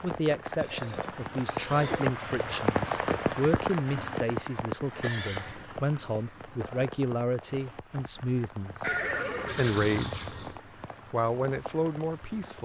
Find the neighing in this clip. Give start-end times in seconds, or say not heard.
0.6-2.2, 5.0-5.7, 8.8-10.6.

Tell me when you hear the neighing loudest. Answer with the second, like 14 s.
9 s.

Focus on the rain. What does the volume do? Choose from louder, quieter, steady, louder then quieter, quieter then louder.
quieter.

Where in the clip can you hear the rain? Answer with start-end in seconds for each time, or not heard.
0.0-12.5.